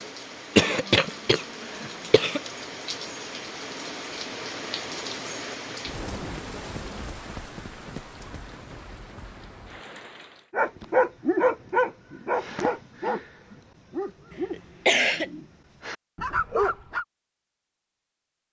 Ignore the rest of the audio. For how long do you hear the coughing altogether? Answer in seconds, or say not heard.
3 s.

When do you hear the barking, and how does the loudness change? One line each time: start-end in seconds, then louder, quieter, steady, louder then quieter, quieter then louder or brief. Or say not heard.
10.5-17.1 quieter then louder.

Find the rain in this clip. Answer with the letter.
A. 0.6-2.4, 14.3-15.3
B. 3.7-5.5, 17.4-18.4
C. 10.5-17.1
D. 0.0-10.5
D.